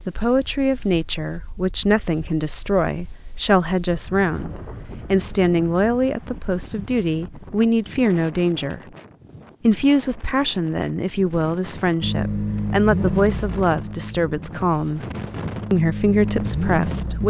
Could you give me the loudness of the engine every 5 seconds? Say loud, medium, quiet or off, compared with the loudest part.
off, off, loud, loud.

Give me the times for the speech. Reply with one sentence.
The speech can be heard from 0.1 to 8.8 s, from 9.6 to 15.0 s and from 15.7 to 17.2 s.